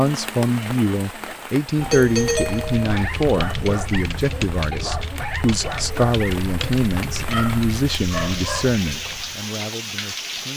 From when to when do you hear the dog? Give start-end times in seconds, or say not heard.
2.8-8.7.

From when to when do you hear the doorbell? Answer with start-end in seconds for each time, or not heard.
1.8-2.9.